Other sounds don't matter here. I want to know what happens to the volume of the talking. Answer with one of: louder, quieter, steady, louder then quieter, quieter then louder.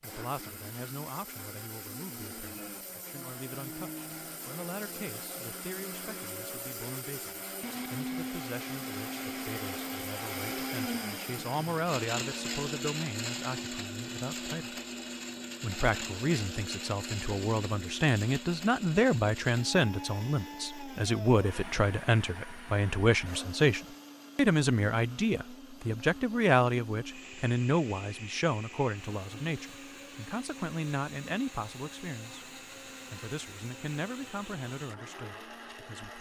louder then quieter.